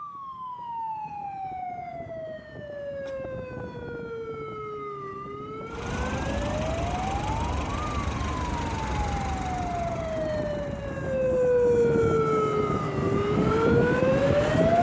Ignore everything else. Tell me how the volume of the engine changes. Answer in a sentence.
The volume of the engine goes down.